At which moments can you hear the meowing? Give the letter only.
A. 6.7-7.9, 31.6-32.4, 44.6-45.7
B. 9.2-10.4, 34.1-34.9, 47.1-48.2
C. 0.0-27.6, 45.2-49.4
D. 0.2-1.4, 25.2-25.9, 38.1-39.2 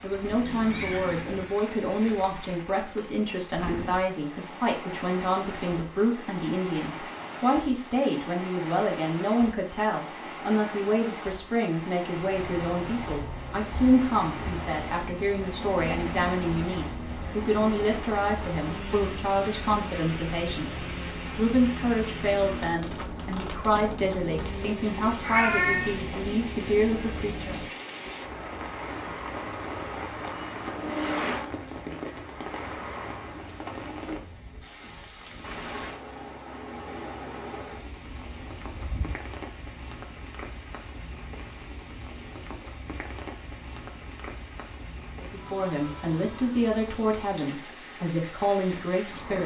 D.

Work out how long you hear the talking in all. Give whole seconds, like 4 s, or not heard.
32 s.